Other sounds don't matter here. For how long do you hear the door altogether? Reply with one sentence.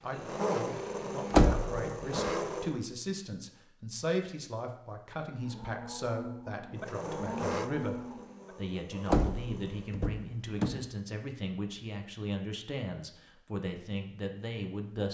The door can be heard for 3 seconds in total.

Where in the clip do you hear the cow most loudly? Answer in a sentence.
The volume of the cow peaks at 7 seconds.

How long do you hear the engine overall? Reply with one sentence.
The engine can be heard for 6 seconds in total.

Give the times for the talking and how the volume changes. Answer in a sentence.
The talking can be heard from 0.0 to 15.0 s, at a steady volume.